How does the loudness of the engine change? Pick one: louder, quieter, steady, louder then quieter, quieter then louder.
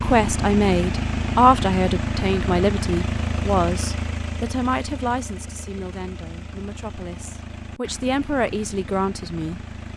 quieter.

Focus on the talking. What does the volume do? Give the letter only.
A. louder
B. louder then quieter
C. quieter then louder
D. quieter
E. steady
C.